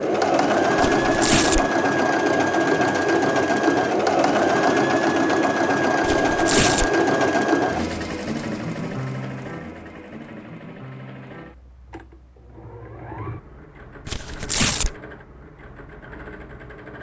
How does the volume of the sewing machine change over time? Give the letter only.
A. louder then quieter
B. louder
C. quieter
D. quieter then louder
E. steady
C.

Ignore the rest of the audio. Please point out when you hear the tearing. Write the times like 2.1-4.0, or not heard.
0.8-1.6, 6.0-6.9, 14.1-14.9.